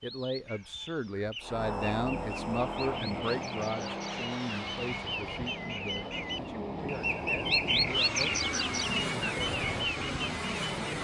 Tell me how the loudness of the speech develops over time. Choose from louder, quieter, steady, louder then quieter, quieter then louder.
quieter.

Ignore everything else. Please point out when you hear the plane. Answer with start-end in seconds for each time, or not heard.
1.4-10.9.